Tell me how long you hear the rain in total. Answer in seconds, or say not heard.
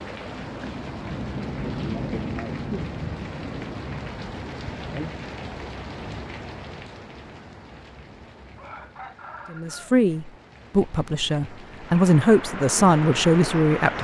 14 s.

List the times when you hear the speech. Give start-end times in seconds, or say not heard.
9.5-13.9.